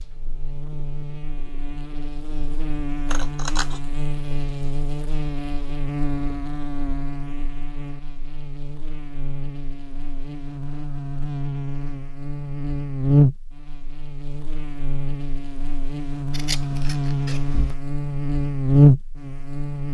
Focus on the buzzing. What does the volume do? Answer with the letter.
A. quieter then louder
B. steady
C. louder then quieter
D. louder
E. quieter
D.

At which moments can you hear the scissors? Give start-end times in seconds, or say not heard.
3.1-3.8, 16.3-17.8.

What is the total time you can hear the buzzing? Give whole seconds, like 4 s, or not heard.
20 s.